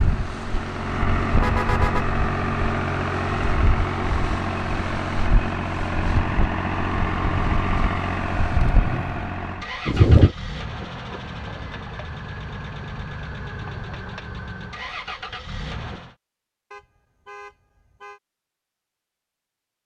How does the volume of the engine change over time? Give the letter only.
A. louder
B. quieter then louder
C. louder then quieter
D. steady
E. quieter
E.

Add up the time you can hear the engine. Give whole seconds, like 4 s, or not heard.
16 s.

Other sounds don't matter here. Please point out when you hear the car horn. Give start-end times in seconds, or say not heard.
1.3-2.0, 8.5-9.3, 16.7-18.2.